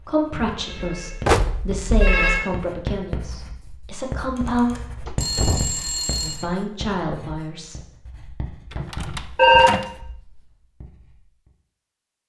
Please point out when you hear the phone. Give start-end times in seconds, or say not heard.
0.3-2.5, 4.3-6.5, 9.3-9.8.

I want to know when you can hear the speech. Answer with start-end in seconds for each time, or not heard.
0.1-4.8, 6.2-7.8.